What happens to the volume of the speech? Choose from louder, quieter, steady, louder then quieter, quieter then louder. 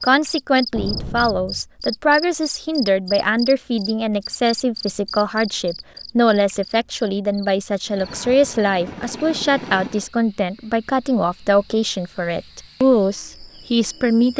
steady.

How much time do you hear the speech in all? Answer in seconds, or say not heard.
14 s.